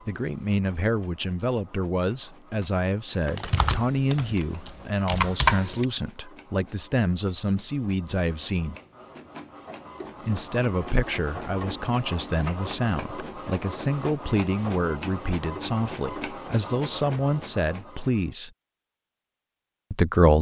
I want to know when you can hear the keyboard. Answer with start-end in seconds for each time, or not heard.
3.2-5.8.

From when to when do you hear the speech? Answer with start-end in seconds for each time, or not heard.
0.1-8.8, 10.2-18.5, 19.9-20.3.